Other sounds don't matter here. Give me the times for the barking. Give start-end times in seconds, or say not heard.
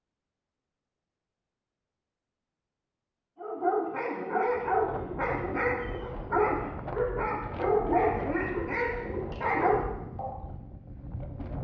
3.4-10.3.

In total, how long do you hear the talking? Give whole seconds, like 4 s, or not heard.
not heard.